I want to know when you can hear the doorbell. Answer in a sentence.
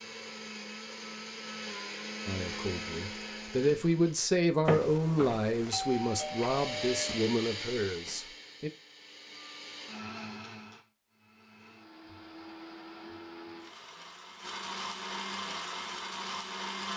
You can hear the doorbell from 4.7 to 7.2 s.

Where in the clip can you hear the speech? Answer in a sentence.
You can hear the speech from 2.2 to 8.7 s.